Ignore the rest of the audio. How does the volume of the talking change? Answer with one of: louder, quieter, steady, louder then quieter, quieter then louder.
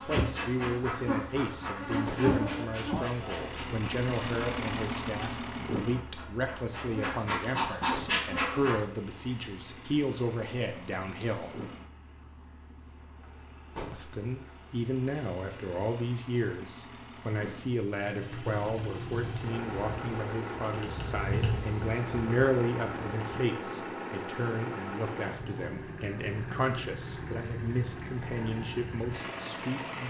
steady.